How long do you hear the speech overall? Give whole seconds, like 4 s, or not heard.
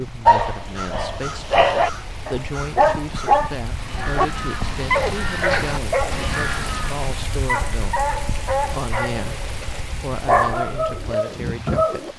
12 s.